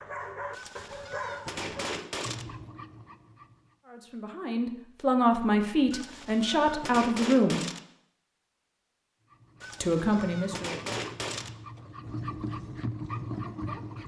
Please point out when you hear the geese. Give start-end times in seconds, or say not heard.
0.5-2.5, 5.9-7.8, 9.6-11.5.